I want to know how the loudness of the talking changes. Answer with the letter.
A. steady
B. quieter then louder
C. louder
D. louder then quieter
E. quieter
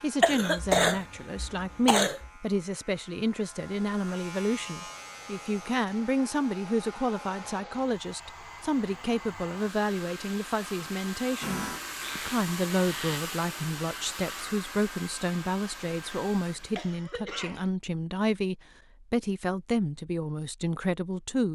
A.